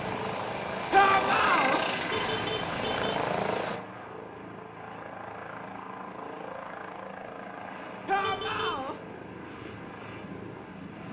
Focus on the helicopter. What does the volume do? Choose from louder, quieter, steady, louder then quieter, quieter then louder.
quieter.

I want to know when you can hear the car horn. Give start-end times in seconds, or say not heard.
2.1-3.1, 8.2-8.8.